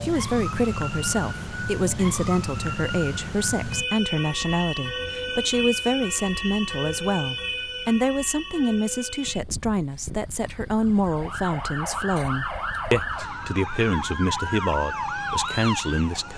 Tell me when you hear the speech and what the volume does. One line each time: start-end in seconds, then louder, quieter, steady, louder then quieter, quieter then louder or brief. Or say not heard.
0.0-16.3 steady.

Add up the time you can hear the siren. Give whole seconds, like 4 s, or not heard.
16 s.